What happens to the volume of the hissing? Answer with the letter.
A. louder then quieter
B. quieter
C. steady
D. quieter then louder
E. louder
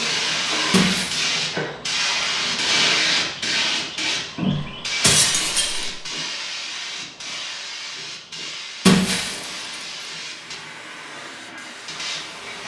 B.